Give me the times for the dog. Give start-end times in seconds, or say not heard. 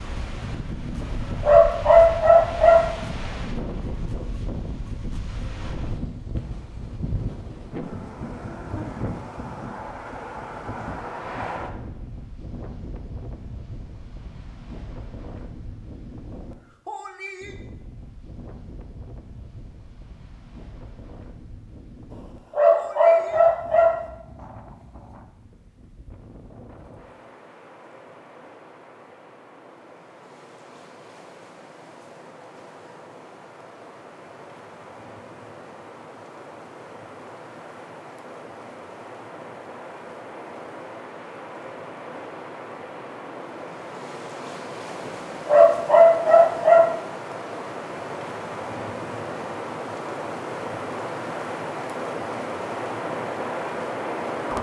1.0-3.0, 22.1-24.1, 45.0-47.0.